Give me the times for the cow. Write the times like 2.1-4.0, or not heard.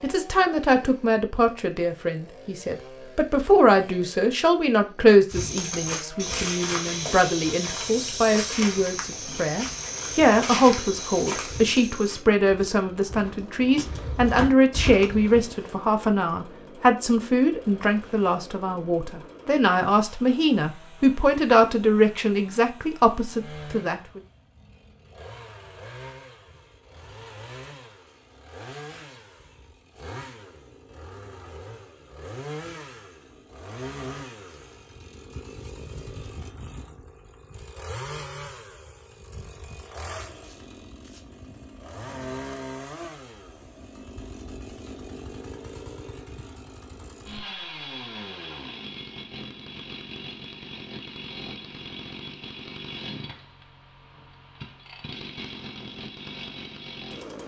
not heard.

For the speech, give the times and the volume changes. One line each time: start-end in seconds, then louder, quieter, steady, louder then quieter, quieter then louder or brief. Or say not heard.
0.0-24.2 steady.